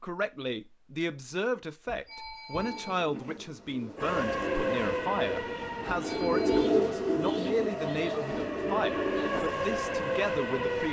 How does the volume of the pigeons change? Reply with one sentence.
The loudness of the pigeons goes up, then down.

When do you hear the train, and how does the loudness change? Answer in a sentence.
The train can be heard from 4.0 to 10.8 s, getting quieter then louder.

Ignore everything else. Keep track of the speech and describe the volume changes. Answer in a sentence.
The loudness of the speech stays about the same.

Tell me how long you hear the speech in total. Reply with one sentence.
You can hear the speech for 11 seconds altogether.